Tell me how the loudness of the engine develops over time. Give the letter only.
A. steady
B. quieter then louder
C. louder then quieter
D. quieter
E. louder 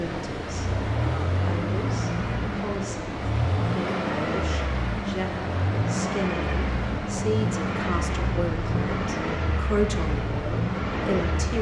A.